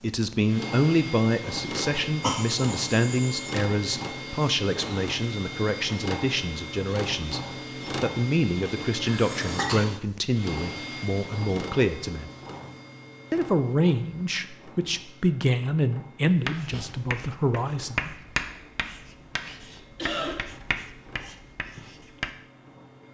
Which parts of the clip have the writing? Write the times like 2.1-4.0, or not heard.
16.2-22.3.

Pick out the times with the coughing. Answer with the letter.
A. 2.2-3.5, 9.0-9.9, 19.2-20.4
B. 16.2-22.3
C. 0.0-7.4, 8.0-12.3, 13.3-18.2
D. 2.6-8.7
A.